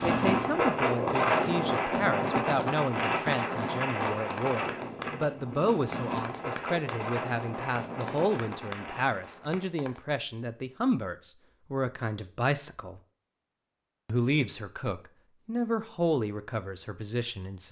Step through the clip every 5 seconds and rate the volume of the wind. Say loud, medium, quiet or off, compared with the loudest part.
loud, medium, off, off.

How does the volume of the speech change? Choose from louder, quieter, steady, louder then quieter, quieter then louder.
steady.